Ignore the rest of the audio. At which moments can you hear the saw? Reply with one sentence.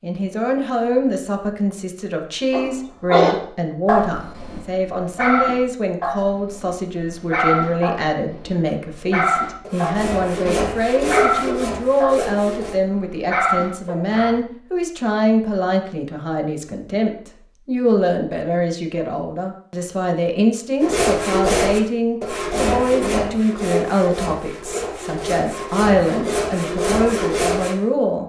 The saw can be heard from 9.3 to 12.8 s and from 20.8 to 27.8 s.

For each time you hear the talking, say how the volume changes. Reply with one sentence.
The talking can be heard from 0.0 to 28.2 s, at a steady volume.